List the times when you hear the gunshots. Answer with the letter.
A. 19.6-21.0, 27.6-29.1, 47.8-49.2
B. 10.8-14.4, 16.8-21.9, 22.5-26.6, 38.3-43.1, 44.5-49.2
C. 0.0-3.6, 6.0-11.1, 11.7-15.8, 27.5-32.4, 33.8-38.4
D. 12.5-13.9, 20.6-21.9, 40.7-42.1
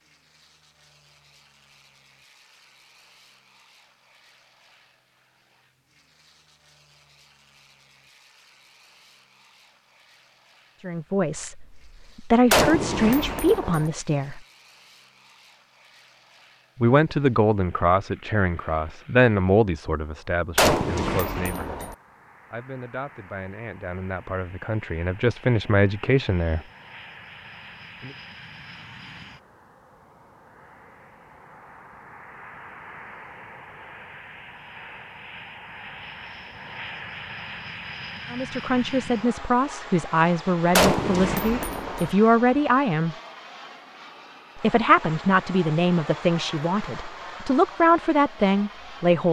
D.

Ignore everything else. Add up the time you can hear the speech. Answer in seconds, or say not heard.
22 s.